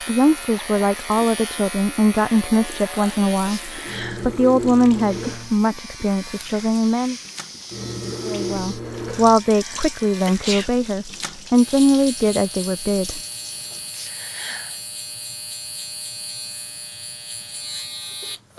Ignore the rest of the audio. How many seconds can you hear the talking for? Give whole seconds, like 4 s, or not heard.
12 s.